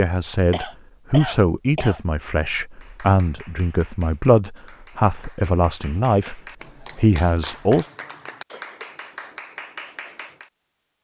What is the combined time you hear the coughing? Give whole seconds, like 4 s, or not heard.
2 s.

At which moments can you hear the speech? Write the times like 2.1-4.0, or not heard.
0.0-7.8.